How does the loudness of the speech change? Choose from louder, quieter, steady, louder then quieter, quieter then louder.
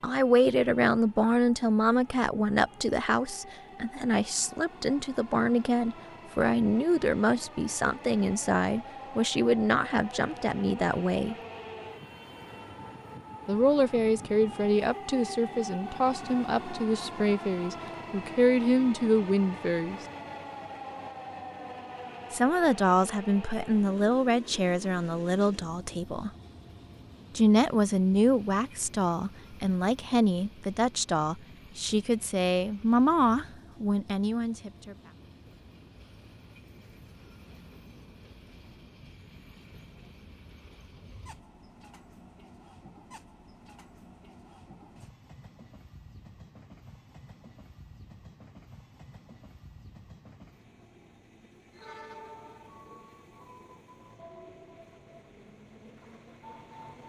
steady.